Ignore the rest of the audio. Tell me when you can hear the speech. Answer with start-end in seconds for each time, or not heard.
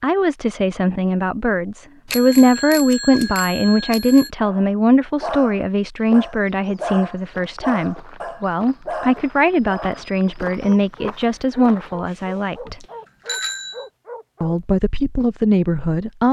0.0-12.8, 14.4-16.2.